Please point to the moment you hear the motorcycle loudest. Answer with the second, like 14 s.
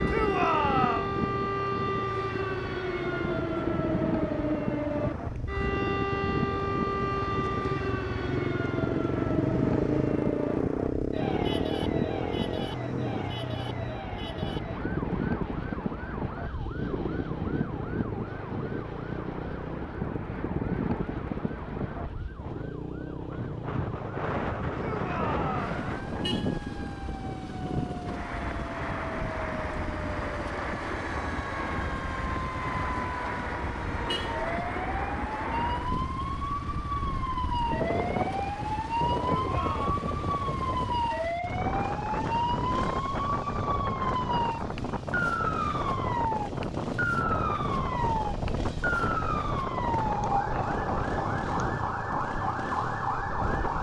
10 s.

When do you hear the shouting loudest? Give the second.
1 s.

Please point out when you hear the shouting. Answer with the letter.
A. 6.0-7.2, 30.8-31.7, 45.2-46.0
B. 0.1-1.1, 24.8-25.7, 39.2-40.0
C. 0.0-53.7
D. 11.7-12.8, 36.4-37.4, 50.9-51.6
B.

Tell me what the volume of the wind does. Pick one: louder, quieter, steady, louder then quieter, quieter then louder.
steady.